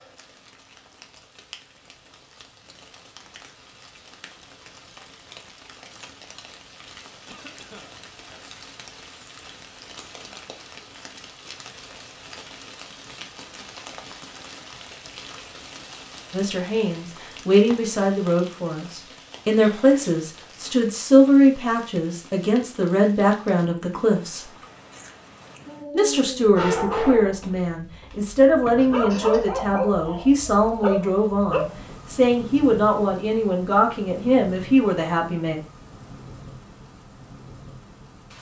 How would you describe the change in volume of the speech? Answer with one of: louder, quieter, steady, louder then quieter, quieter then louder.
steady.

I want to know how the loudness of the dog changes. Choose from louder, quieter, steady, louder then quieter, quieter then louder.
quieter then louder.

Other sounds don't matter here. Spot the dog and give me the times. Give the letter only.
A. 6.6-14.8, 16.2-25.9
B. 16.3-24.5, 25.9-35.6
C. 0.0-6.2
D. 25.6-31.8
D.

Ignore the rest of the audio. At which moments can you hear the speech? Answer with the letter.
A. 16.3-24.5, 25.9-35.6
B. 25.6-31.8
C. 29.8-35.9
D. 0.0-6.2
A.